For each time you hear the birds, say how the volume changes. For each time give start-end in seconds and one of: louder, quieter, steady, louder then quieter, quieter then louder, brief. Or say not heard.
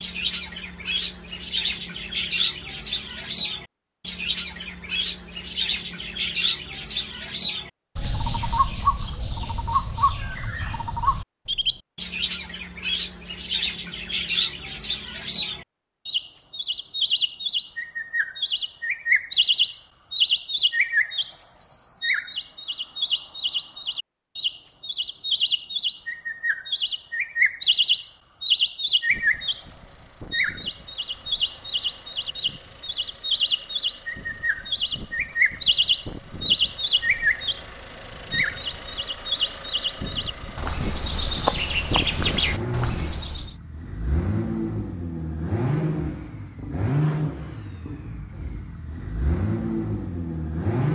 0.0-43.5 steady.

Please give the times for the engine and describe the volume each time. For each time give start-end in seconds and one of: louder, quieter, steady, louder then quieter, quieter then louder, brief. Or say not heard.
29.1-50.8 louder.